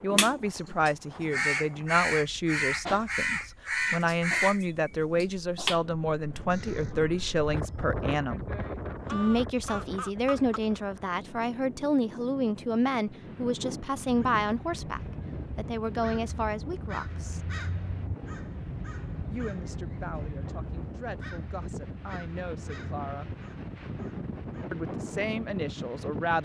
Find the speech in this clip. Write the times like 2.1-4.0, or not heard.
0.0-8.4, 9.1-17.5, 19.3-23.3, 24.7-26.4.